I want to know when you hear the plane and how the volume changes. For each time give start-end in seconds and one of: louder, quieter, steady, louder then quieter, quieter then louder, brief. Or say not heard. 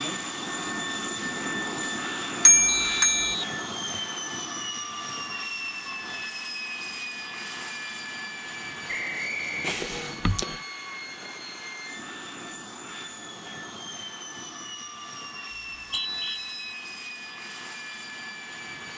0.0-18.9 quieter.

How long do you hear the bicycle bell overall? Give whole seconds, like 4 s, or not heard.
3 s.